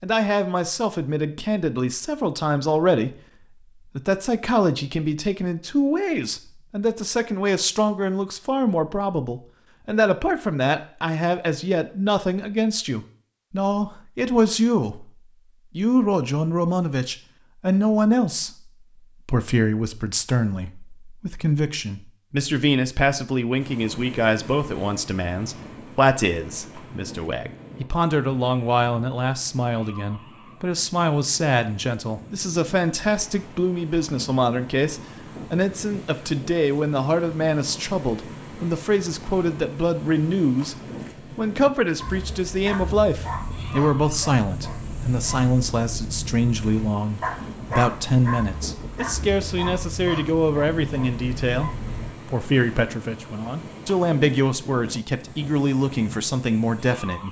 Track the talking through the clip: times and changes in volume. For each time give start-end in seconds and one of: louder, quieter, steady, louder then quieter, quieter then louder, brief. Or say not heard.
0.0-57.2 steady.